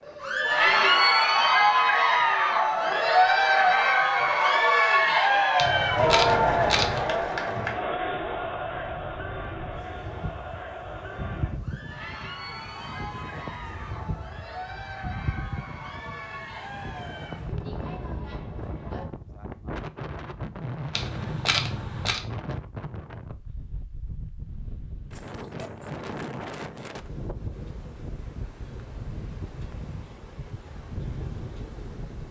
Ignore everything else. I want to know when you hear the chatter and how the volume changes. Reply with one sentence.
The chatter can be heard from 0.1 to 19.1 s, getting quieter.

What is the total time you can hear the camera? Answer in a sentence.
The camera can be heard for 3 seconds in total.